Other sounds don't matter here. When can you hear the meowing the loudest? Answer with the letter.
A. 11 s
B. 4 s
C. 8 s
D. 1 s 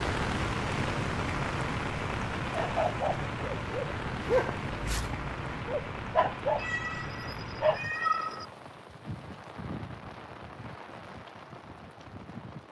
C.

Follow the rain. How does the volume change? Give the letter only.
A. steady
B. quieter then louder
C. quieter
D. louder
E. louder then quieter
C.